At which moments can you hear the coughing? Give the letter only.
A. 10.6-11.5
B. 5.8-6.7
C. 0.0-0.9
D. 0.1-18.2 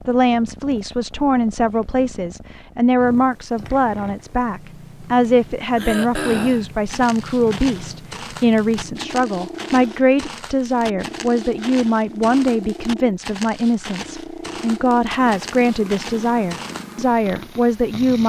B.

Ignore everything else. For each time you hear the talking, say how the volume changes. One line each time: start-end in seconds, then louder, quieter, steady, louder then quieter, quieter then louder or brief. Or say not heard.
0.1-18.2 steady.